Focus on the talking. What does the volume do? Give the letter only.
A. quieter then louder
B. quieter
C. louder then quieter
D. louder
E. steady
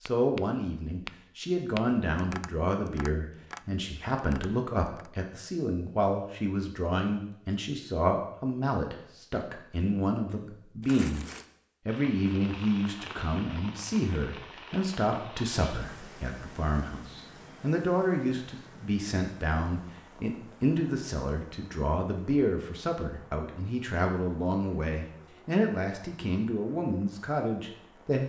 E.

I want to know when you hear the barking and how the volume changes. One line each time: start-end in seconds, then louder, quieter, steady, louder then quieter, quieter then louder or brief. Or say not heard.
not heard.